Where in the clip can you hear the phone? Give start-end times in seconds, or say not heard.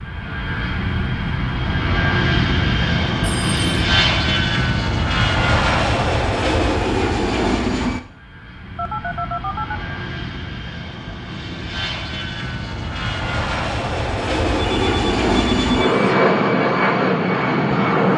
3.2-3.9, 8.8-9.8, 14.6-15.9.